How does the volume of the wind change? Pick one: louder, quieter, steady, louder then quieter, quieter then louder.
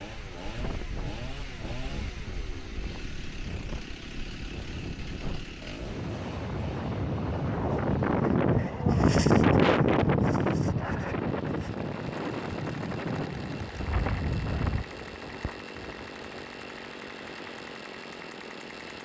louder then quieter.